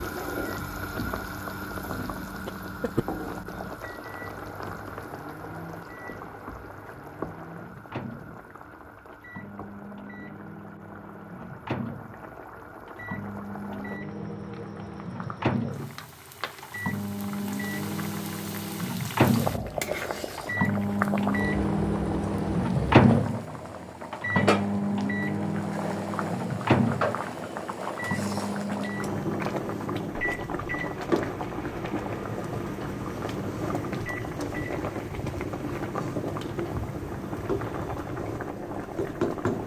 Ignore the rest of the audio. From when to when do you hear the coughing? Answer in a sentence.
You can hear the coughing from 2.5 to 3.0 s.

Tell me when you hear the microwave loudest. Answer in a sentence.
The loudest moment of the microwave is at 23 seconds.